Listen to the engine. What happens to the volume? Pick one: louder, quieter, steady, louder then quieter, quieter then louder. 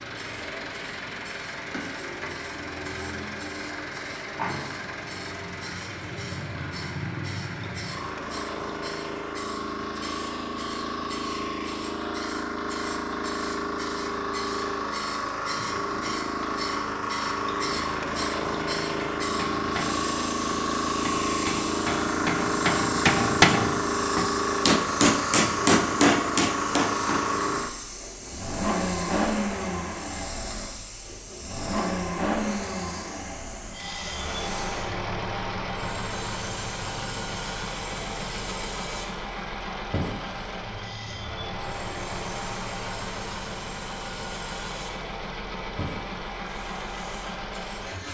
louder then quieter.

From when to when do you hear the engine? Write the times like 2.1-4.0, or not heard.
0.0-48.0.